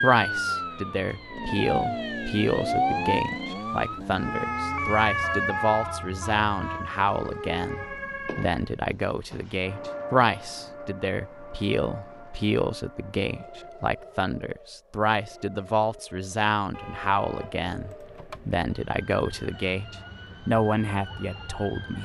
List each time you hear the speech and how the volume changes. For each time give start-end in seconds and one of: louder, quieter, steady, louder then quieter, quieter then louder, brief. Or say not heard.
0.0-22.0 steady.